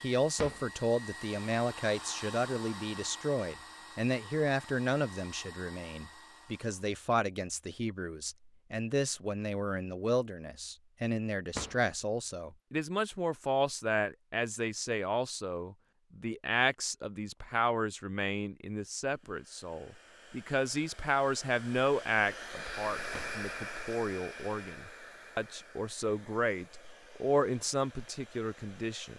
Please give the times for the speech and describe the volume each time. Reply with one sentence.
You can hear the speech from 0.0 to 29.1 s, at a steady volume.